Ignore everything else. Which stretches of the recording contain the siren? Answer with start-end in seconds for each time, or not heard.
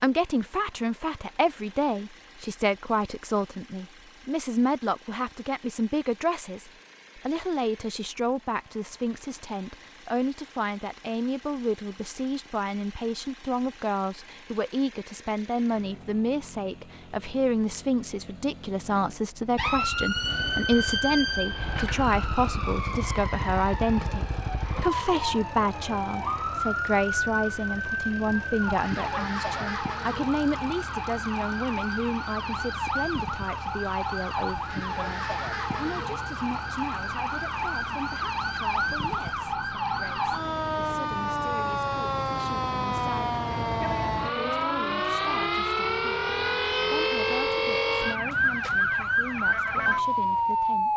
19.6-50.9.